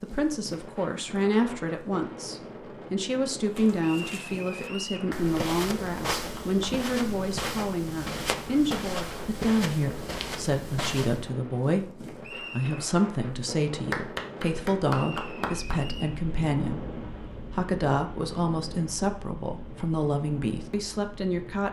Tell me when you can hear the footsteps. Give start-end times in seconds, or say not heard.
3.5-11.3.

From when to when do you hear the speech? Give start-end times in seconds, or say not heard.
0.0-21.6.